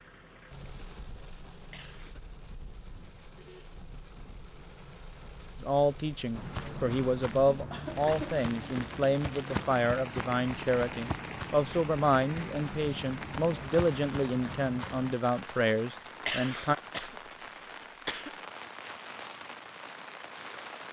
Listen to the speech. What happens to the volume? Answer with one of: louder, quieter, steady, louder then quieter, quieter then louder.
steady.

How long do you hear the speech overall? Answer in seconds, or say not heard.
11 s.